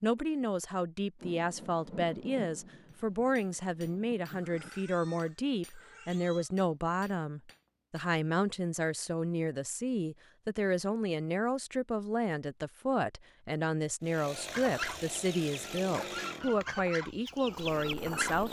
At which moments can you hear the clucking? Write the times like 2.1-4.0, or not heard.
14.3-18.4.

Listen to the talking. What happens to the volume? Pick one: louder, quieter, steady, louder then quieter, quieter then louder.
steady.